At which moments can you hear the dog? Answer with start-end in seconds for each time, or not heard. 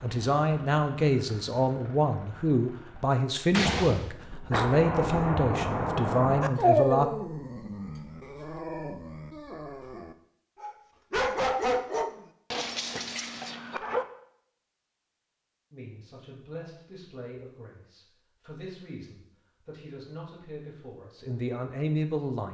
6.4-14.1.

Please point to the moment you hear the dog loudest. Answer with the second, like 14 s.
7 s.